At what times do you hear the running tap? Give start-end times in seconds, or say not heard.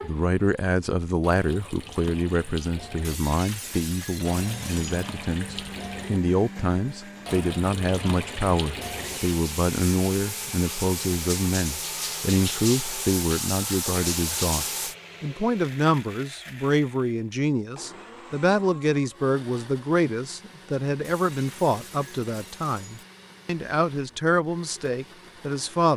0.0-14.9.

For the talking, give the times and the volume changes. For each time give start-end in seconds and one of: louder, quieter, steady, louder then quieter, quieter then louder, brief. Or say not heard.
0.0-25.9 steady.